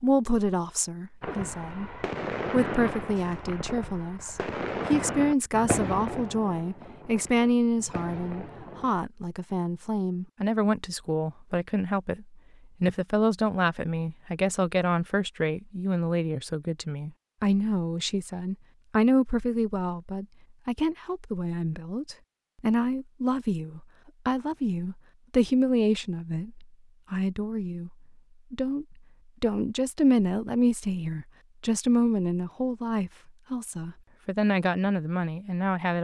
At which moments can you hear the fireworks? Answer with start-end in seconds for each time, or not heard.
1.2-8.9.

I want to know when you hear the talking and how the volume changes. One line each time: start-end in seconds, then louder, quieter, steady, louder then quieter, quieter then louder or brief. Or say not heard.
0.0-1.9 brief
2.5-35.9 steady.